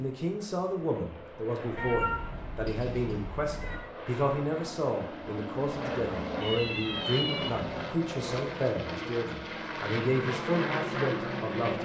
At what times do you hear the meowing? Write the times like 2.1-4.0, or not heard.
1.8-3.8, 6.4-7.5.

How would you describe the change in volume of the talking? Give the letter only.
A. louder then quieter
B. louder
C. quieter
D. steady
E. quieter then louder
D.